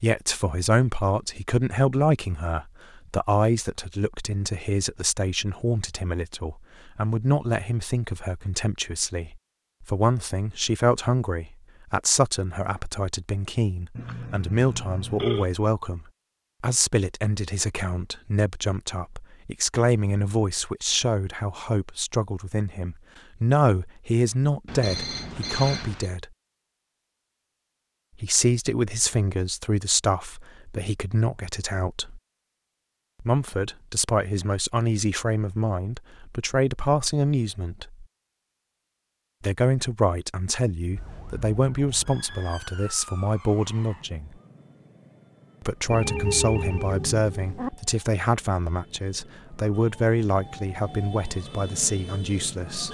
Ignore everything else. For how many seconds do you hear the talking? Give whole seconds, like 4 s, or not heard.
47 s.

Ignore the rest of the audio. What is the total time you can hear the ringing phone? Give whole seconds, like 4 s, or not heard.
5 s.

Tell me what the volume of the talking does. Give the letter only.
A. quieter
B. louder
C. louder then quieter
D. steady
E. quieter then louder
D.